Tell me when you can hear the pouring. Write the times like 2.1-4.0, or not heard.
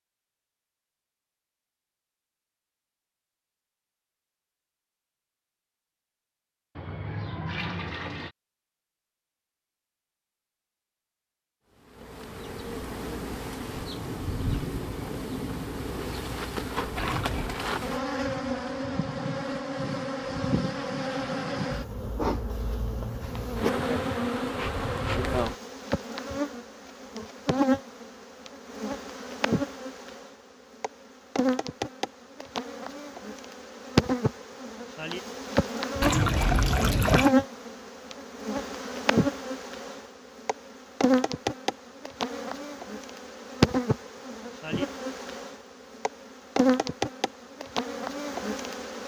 6.8-8.3, 16.9-17.6, 36.0-37.4.